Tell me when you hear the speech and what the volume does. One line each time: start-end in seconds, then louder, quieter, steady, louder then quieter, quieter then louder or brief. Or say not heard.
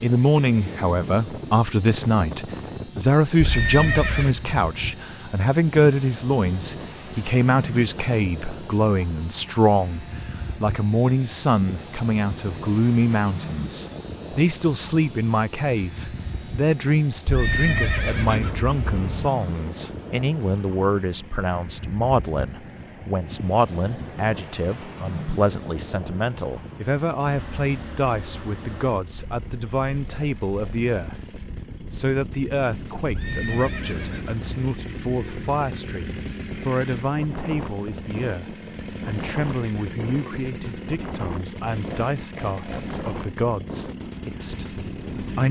0.0-45.4 quieter.